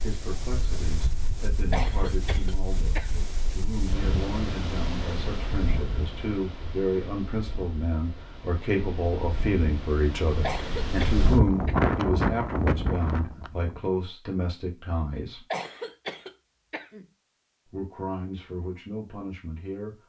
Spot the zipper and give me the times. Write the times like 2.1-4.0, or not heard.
not heard.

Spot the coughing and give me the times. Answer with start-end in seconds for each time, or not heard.
1.7-3.3, 10.4-11.8, 15.5-17.1.